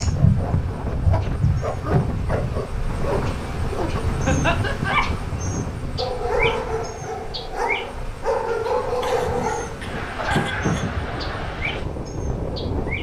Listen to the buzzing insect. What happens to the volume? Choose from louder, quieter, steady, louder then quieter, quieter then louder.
quieter.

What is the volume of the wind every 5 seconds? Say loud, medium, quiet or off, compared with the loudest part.
loud, medium, loud.